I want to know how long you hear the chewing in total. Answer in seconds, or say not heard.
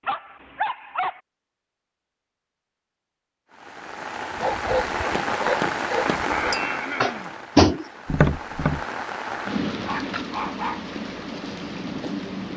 not heard.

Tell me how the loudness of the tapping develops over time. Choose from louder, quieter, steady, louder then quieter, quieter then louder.
louder then quieter.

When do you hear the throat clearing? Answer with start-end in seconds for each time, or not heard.
6.0-7.3.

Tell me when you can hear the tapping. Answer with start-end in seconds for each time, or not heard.
4.4-8.8.